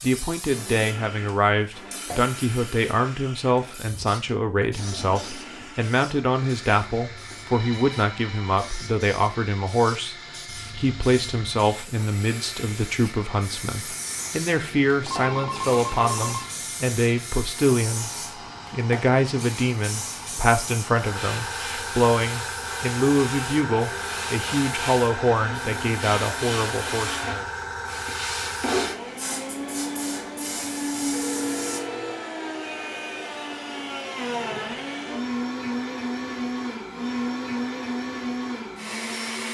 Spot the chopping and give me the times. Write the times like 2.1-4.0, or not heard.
not heard.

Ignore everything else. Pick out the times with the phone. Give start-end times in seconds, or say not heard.
7.2-8.6, 15.0-16.5, 30.9-32.2.